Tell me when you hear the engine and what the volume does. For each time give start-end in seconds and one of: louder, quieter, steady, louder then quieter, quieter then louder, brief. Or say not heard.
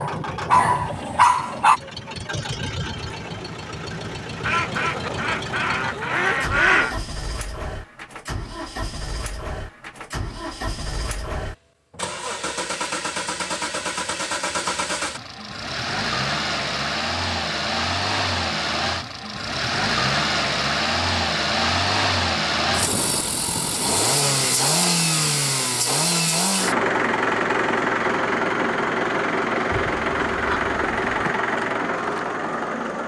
0.0-33.0 louder.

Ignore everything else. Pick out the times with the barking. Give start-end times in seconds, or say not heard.
0.0-1.8.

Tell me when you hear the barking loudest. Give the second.
1 s.